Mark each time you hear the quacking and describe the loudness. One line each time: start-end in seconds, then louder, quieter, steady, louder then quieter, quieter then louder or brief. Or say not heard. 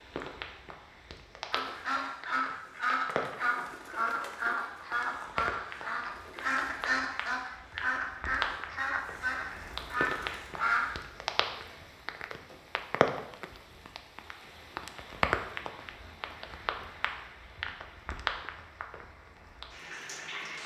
1.5-10.9 steady.